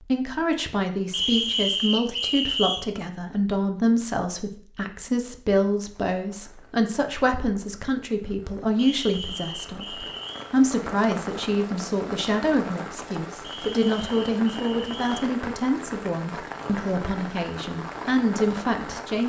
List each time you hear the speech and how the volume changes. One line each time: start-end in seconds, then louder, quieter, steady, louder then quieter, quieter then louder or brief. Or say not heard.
0.0-19.2 steady.